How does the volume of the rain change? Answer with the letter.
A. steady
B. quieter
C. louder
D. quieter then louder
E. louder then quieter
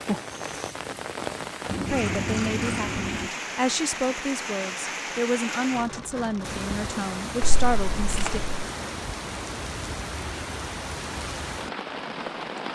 A.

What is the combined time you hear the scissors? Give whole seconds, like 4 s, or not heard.
3 s.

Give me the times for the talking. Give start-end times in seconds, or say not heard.
1.9-8.4.